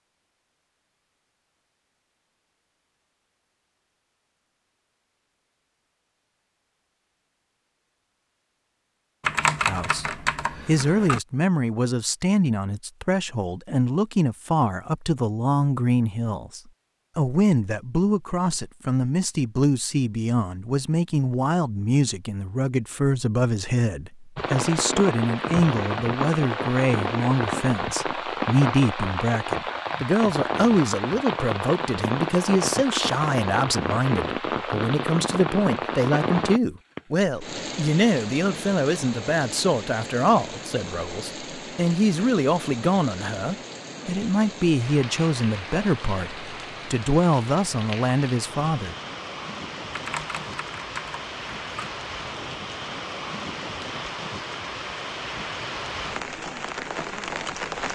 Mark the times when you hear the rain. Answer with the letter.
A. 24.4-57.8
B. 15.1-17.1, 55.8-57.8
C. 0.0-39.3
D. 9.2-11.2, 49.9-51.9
A.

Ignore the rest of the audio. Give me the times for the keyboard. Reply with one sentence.
You can hear the keyboard from 9.2 to 11.2 s and from 49.9 to 51.9 s.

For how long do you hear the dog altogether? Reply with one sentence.
You can't hear the dog here.